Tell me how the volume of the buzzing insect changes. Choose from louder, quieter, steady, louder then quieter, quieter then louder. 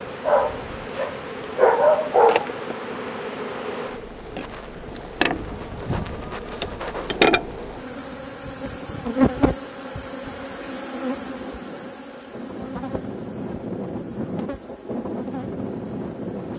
louder then quieter.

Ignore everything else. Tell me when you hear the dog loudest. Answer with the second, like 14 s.
2 s.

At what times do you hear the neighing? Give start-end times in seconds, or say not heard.
not heard.